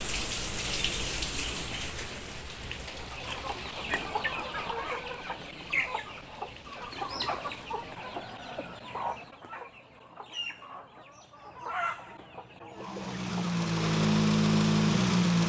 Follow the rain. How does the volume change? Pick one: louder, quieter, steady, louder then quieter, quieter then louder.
quieter.